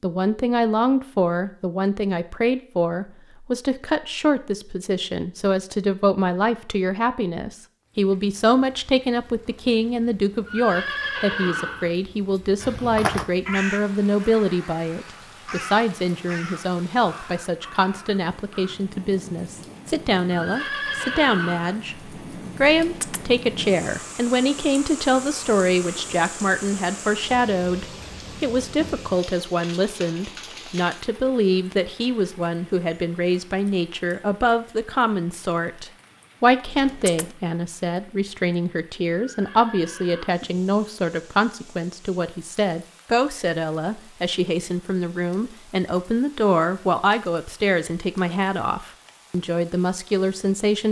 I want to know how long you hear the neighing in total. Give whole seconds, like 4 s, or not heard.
4 s.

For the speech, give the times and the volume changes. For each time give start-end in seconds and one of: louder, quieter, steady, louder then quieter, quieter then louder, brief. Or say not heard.
0.0-50.8 steady.